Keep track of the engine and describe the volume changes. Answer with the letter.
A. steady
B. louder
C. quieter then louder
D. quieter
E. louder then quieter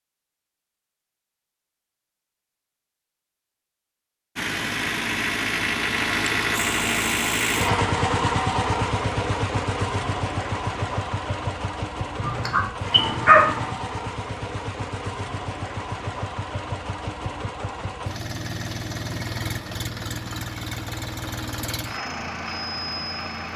D.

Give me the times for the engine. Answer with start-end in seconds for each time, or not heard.
4.3-23.5.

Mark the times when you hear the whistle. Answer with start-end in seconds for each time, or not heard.
not heard.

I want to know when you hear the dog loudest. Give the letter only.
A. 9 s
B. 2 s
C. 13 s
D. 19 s
C.